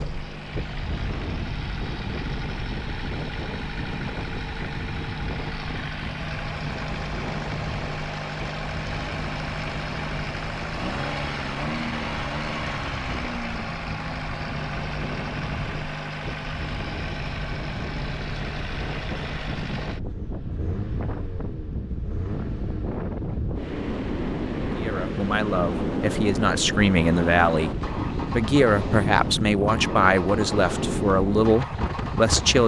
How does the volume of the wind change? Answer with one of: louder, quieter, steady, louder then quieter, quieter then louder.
louder.